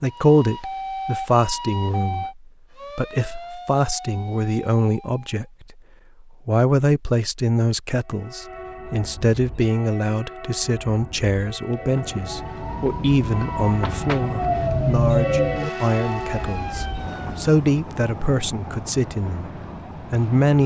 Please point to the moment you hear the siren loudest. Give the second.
15 s.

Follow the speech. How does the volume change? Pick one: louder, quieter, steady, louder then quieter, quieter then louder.
steady.